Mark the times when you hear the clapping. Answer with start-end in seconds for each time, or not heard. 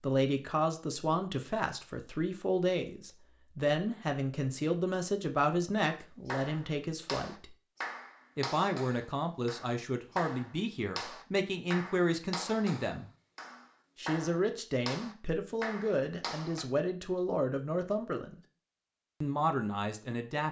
6.2-16.6.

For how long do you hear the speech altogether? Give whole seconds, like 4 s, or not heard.
18 s.